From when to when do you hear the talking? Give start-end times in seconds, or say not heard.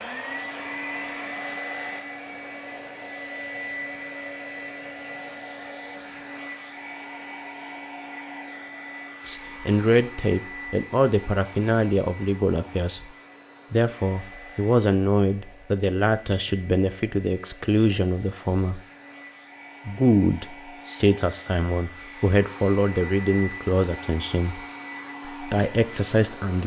9.2-13.1, 13.7-18.8, 19.9-24.6, 25.2-26.6.